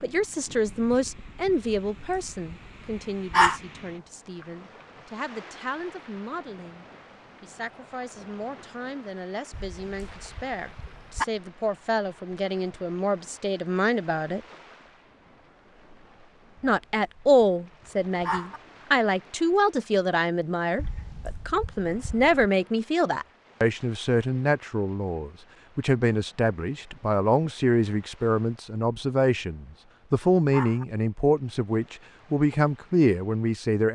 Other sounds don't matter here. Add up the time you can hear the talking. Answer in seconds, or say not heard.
32 s.